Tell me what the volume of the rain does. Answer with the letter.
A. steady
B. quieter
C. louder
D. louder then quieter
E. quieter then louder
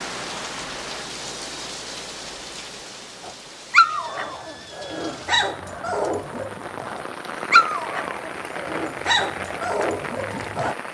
E.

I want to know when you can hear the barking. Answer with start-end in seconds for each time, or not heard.
3.2-10.8.